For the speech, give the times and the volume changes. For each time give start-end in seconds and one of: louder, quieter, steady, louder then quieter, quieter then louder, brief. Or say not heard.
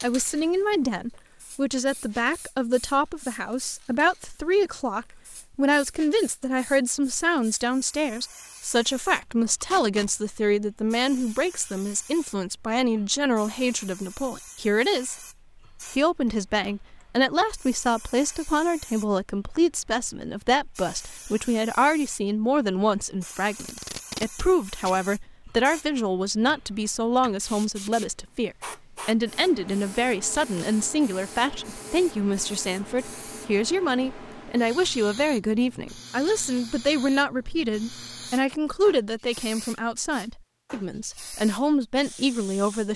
0.0-15.2 steady
15.8-42.9 steady.